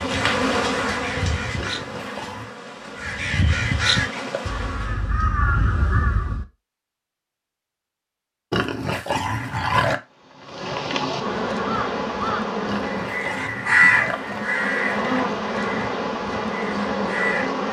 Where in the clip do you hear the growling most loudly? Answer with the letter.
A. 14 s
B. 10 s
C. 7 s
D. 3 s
B.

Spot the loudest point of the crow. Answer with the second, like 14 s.
14 s.